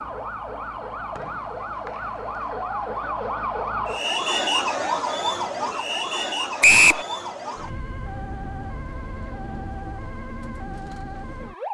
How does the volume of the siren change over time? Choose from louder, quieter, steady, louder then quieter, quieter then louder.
louder then quieter.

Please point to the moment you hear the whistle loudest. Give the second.
7 s.